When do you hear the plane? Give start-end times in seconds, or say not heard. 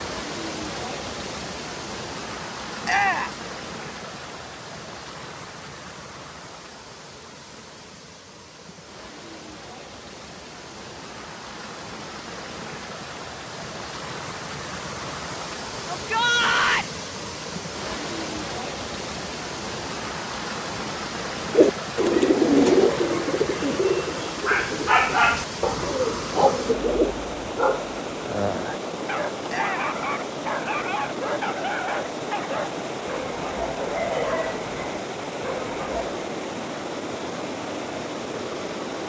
not heard.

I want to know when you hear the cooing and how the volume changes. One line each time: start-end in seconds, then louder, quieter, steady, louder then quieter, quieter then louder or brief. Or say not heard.
21.5-27.1 quieter then louder.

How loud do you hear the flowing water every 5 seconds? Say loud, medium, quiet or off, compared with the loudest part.
loud, medium, medium, loud, loud, loud, loud, loud.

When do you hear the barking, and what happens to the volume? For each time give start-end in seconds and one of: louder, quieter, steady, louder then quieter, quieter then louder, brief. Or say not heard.
24.4-36.2 quieter.